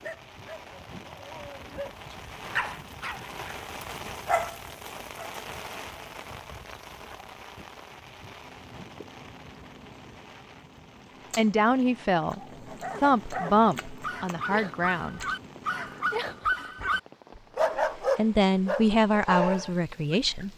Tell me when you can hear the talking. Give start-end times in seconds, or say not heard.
11.3-12.4, 13.0-15.2, 17.9-20.5.